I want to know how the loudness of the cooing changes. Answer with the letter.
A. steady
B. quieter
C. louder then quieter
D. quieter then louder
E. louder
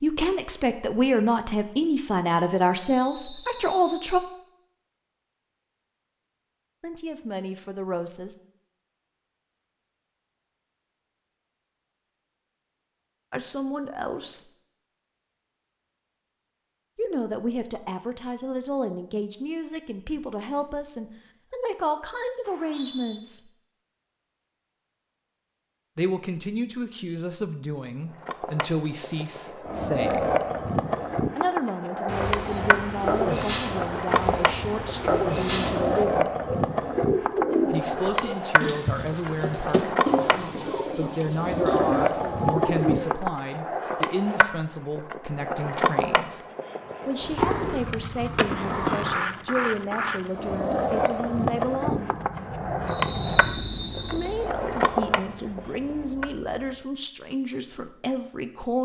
A.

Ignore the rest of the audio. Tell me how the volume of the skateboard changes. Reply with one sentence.
The loudness of the skateboard stays about the same.